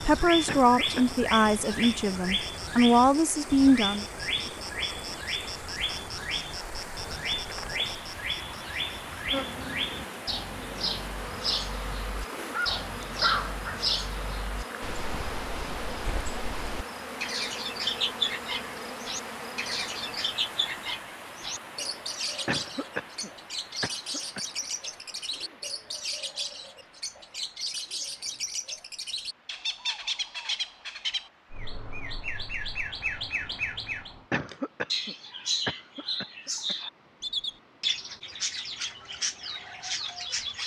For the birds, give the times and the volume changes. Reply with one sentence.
You can hear the birds from 0.0 to 40.6 s, at a steady volume.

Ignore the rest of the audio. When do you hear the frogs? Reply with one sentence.
You can't hear the frogs here.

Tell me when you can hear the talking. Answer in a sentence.
The talking can be heard from 0.0 to 4.0 s.